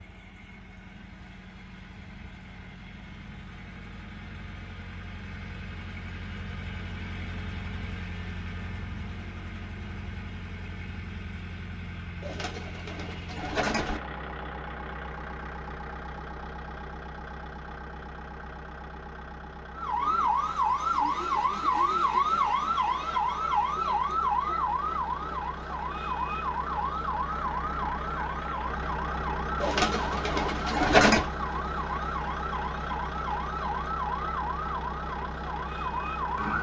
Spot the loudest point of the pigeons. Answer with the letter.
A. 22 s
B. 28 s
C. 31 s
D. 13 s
C.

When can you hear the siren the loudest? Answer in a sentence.
The volume of the siren peaks at 22 seconds.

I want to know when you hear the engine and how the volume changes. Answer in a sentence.
The engine can be heard from 0.0 to 36.5 s, getting louder.